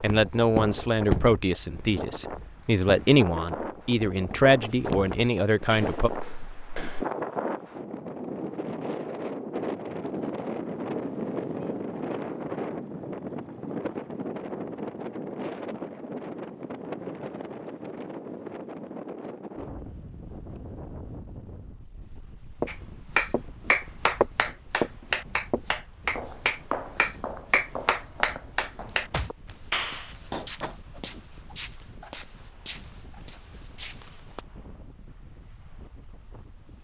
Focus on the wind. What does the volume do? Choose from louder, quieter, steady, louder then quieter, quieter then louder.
quieter.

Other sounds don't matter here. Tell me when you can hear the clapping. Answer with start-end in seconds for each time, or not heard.
22.6-30.8.